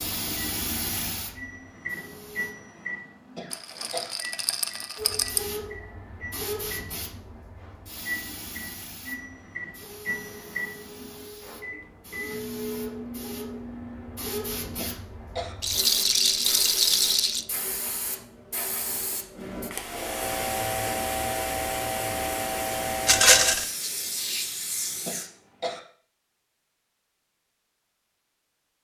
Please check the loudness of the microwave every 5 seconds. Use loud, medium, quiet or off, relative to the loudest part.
loud, loud, loud, off, off, off.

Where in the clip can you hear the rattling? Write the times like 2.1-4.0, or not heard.
3.5-5.4, 15.6-17.4, 23.1-23.6.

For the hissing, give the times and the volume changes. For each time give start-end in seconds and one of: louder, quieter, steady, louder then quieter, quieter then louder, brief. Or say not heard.
0.0-2.5 brief
5.0-25.3 louder.